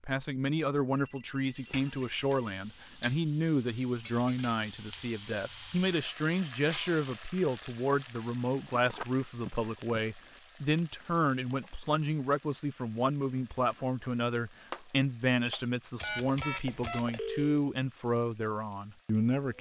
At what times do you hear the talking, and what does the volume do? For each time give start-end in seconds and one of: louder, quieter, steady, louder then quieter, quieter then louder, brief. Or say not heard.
0.0-19.5 steady.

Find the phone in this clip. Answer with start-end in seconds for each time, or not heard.
0.9-3.0, 8.8-10.0, 15.9-17.6.